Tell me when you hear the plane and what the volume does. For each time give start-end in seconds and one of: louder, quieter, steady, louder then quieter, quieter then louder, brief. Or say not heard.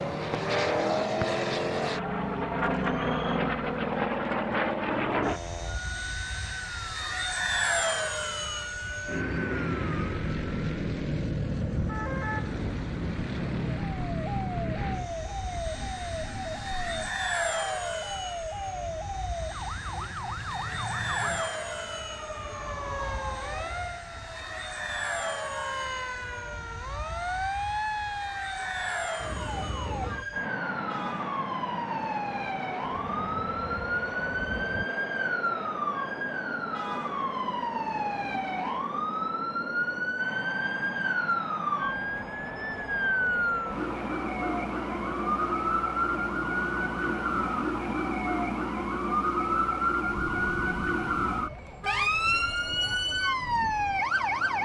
0.0-54.5 quieter.